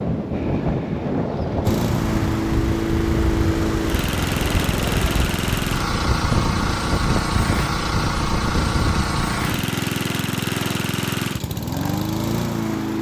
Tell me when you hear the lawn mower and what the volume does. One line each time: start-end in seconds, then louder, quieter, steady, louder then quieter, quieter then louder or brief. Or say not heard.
1.6-12.9 steady.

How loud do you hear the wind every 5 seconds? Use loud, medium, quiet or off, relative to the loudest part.
loud, loud, off.